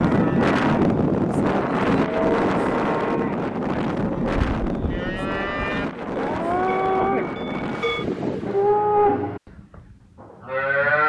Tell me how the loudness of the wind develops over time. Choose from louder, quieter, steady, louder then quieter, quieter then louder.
quieter.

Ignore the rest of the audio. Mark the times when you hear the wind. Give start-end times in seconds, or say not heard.
0.0-8.8.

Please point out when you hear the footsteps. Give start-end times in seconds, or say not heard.
not heard.